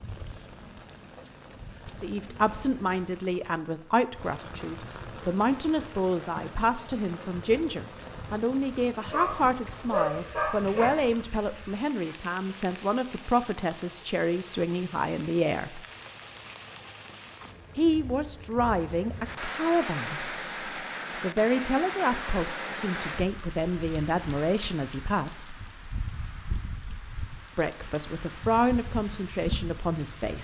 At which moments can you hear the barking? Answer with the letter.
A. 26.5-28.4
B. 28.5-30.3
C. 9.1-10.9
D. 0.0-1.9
C.